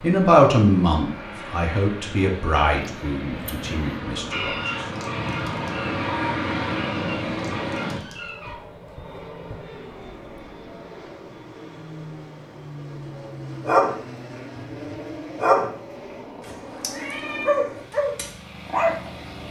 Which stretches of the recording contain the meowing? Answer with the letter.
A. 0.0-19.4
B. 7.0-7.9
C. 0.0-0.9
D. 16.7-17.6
D.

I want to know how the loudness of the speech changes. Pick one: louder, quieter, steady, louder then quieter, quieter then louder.
quieter.